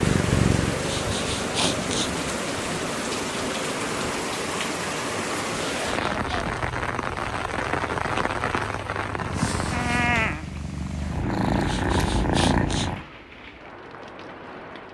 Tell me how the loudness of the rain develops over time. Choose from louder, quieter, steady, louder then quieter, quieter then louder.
quieter.